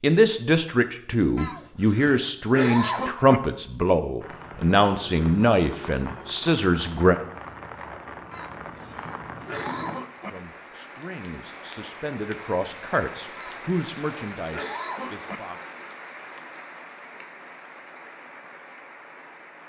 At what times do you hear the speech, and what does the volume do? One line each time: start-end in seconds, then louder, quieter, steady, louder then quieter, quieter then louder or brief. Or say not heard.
0.0-7.2 steady
10.2-15.6 louder then quieter.